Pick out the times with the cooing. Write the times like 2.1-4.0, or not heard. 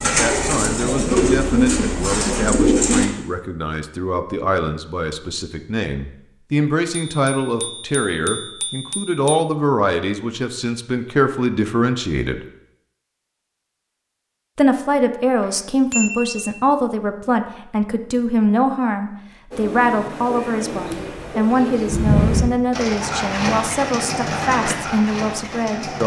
0.0-3.0, 19.5-26.0.